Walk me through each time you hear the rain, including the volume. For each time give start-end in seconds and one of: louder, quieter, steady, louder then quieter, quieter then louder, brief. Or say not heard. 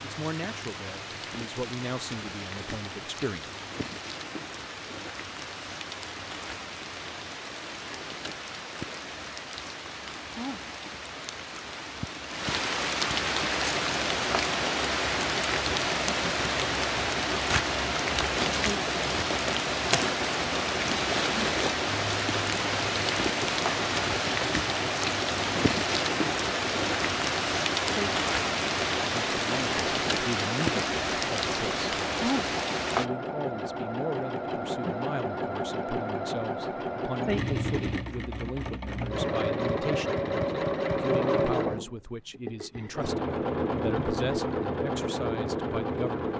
0.0-33.0 louder.